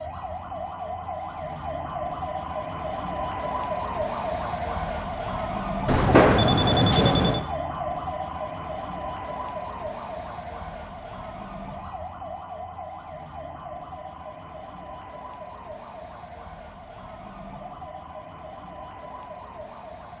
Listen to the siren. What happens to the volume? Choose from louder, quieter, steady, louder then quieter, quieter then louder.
quieter.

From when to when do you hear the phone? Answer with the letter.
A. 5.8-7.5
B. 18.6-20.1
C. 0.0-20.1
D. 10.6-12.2
A.